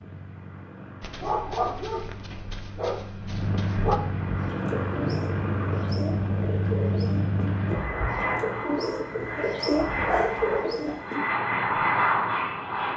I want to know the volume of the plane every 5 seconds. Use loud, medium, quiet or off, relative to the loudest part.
medium, loud, loud.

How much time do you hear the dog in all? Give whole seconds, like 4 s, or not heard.
4 s.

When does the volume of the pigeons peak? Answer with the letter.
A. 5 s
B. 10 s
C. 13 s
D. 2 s
B.